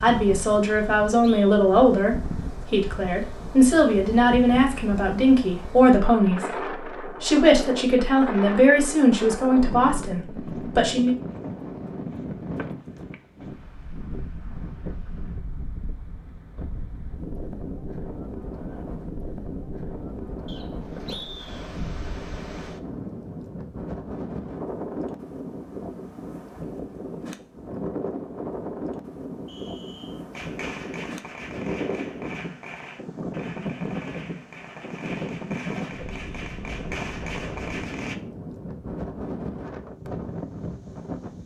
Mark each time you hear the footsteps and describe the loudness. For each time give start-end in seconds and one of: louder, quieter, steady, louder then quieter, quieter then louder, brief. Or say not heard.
not heard.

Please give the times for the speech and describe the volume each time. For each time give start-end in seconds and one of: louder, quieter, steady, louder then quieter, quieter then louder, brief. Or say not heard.
0.0-11.2 steady.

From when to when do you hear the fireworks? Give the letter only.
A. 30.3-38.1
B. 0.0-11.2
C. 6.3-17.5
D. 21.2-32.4
A.